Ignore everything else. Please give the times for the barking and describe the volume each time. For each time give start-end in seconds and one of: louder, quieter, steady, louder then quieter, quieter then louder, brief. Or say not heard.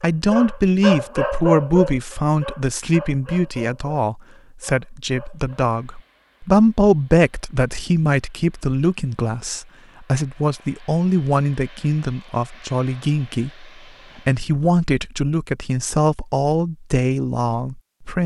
0.3-5.6 quieter.